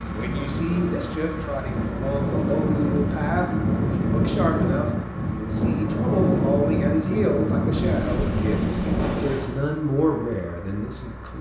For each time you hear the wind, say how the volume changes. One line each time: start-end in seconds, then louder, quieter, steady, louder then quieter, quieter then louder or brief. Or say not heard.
0.0-9.6 louder.